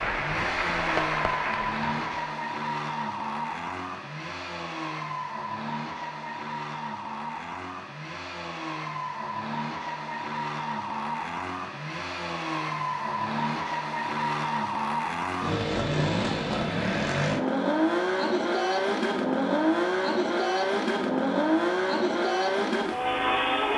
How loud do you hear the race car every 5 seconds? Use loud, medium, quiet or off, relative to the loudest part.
medium, medium, medium, loud, loud.